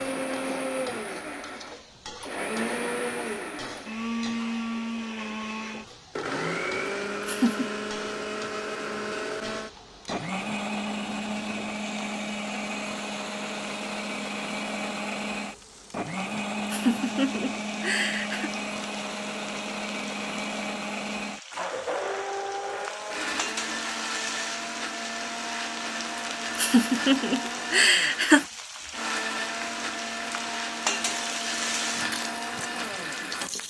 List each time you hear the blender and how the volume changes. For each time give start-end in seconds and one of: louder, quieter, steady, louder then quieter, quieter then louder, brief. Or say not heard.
0.0-33.5 steady.